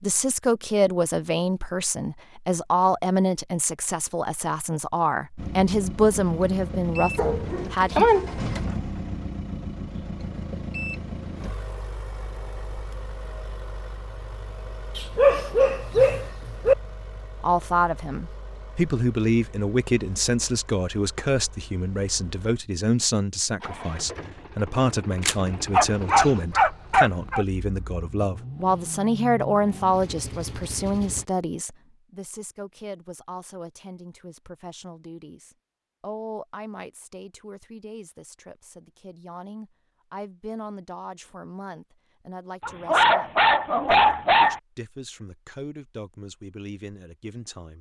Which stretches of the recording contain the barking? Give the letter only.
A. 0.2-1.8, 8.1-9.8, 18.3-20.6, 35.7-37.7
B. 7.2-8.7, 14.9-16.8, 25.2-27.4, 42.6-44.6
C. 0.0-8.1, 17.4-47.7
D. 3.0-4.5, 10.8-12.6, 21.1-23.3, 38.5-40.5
B.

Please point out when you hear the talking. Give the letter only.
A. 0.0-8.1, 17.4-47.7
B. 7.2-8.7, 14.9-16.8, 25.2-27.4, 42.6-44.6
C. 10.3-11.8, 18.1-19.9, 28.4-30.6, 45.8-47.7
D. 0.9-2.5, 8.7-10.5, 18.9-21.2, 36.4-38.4
A.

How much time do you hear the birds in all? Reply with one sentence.
The birds can't be heard in this clip.